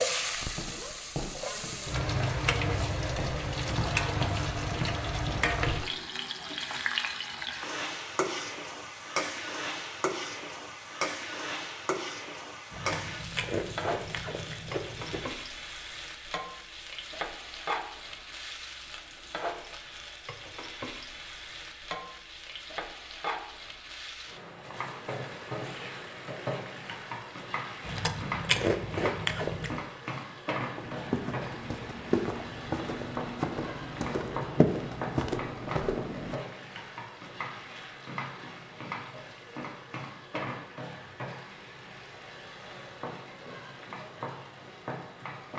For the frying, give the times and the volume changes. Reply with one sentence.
The frying can be heard from 0.0 to 45.5 s, getting quieter.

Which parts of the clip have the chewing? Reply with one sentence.
You can hear the chewing from 12.7 to 15.2 s and from 27.9 to 29.8 s.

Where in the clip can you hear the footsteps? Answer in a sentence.
You can hear the footsteps from 0.3 to 5.9 s and from 30.8 to 36.4 s.